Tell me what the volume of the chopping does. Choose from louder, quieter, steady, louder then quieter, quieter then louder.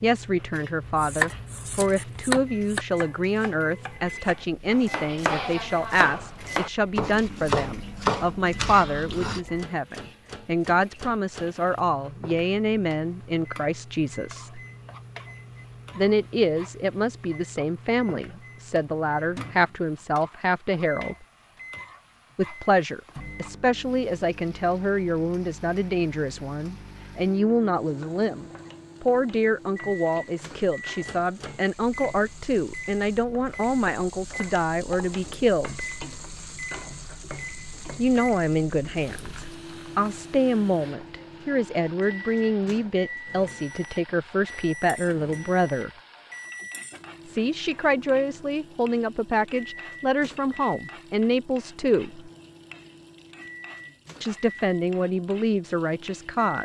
quieter then louder.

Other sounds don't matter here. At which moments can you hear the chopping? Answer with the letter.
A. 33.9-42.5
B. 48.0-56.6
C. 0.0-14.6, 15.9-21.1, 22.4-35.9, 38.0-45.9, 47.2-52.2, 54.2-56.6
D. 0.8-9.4
D.